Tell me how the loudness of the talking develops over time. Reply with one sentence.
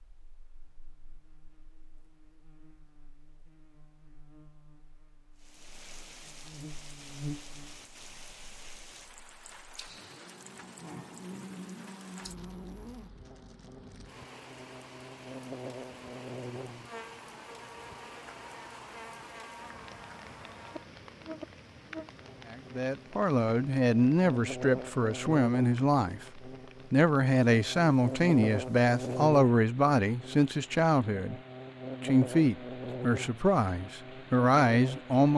The loudness of the talking stays about the same.